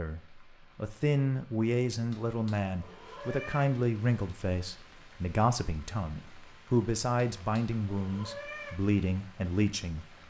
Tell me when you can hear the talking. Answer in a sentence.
You can hear the talking from 0.0 to 10.1 s.